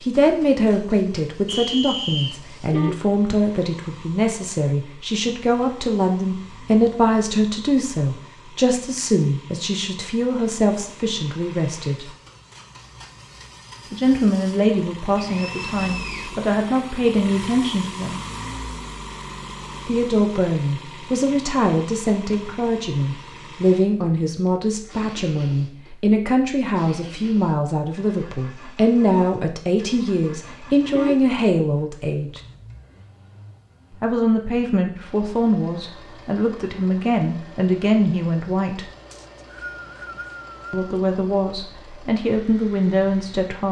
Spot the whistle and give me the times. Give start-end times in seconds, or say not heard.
1.4-2.4, 15.3-16.4, 39.1-40.9.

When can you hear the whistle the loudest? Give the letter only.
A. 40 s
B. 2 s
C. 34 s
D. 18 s
B.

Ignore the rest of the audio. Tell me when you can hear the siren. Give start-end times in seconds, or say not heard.
not heard.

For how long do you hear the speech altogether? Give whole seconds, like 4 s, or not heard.
37 s.